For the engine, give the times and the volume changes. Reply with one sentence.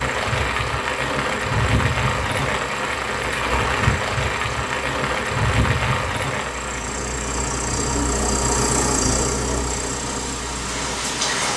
You can hear the engine from 0.0 to 11.3 s, getting louder.